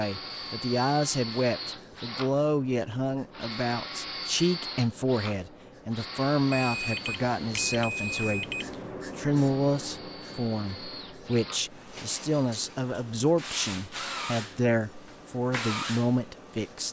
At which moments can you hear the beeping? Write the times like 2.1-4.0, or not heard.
6.5-8.9.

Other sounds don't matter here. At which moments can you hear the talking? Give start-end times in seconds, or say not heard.
0.0-8.4, 9.2-16.8.